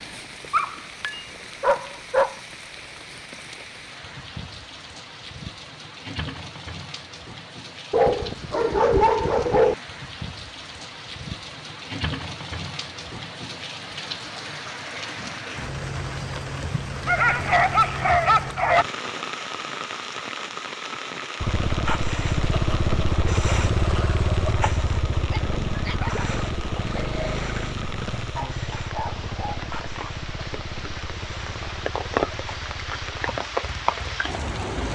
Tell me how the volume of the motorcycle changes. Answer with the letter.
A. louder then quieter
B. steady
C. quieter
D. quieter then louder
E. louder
C.